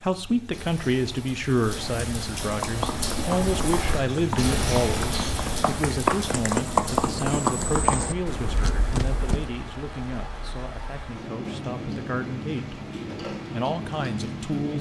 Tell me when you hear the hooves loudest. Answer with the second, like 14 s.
7 s.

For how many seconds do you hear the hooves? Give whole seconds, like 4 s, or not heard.
7 s.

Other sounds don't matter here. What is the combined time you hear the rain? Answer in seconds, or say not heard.
15 s.